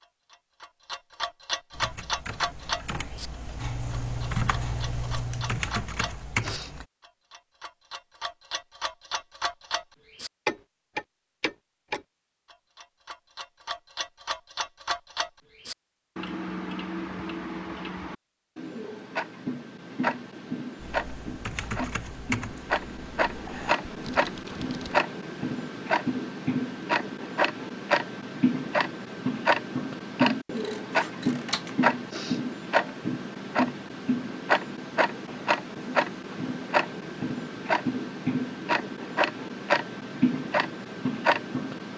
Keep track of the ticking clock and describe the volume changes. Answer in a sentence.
The volume of the ticking clock goes up.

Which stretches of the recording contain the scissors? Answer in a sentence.
The scissors can be heard from 3.5 to 5.6 s and from 30.6 to 31.8 s.